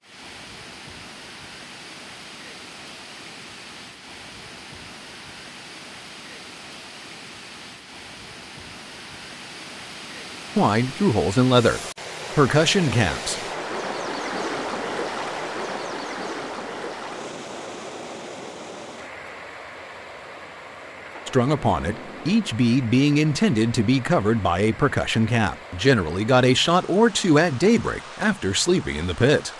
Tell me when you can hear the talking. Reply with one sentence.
You can hear the talking from 10.6 to 13.4 s and from 21.2 to 29.5 s.